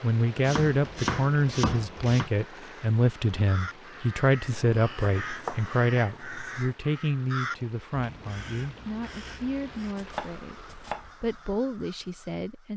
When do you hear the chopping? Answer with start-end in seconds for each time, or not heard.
0.4-2.3, 4.7-6.8, 9.9-11.1.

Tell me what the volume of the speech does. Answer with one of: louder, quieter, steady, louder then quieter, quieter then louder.
quieter.